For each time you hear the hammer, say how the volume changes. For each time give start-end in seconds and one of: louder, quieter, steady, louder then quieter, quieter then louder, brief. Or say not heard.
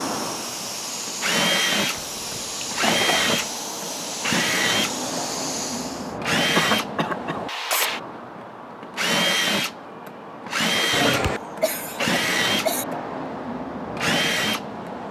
not heard.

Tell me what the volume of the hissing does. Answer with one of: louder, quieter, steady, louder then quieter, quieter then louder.
steady.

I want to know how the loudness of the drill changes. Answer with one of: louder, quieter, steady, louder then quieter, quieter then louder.
steady.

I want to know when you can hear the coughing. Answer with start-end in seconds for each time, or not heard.
1.9-3.4, 6.5-7.4, 10.9-12.8.